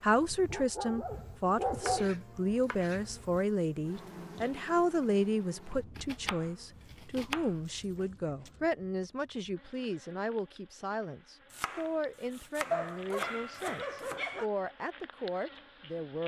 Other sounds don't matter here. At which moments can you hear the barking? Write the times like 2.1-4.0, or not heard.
0.5-2.1, 6.8-8.6, 12.7-14.4.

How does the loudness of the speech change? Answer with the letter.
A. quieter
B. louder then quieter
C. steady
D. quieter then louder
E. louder
A.